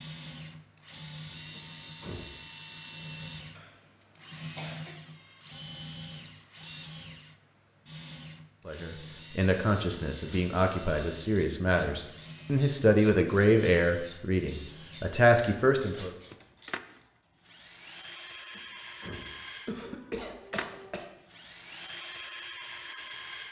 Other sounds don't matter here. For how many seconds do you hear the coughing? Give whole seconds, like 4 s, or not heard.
3 s.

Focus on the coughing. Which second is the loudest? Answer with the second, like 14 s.
20 s.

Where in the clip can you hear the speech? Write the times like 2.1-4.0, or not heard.
8.7-16.1.